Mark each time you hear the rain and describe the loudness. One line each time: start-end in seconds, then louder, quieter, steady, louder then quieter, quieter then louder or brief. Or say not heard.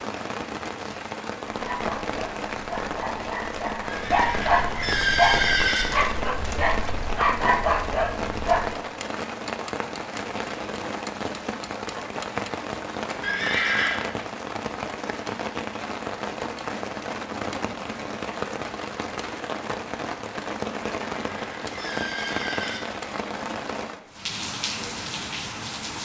0.0-26.0 steady.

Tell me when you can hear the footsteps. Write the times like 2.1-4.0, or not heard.
not heard.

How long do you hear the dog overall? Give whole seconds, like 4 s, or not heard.
7 s.